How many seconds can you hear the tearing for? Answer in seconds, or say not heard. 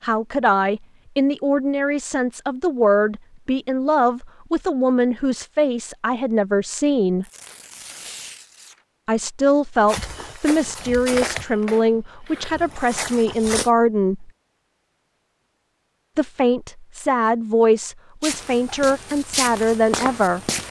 2 s.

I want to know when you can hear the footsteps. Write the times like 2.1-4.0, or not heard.
9.8-13.7, 18.2-20.6.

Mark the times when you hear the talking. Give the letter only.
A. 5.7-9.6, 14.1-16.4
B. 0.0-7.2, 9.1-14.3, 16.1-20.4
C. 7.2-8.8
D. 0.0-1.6
B.